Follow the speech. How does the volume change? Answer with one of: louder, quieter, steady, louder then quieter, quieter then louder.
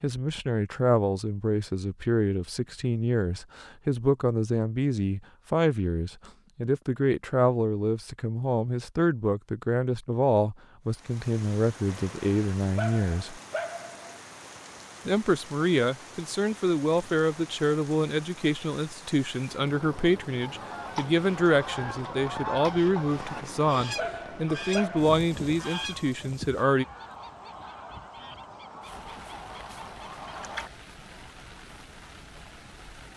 steady.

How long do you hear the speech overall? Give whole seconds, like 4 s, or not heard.
25 s.